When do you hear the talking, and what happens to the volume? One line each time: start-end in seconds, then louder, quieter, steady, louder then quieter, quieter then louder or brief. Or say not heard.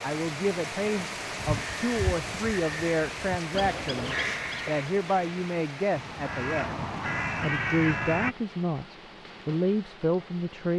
0.0-10.7 steady.